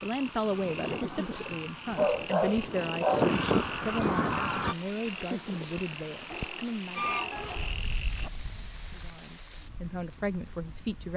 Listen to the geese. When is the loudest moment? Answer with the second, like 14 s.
3 s.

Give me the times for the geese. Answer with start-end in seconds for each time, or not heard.
0.0-4.8, 7.0-11.1.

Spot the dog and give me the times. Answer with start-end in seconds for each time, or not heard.
1.4-3.3, 6.2-8.3.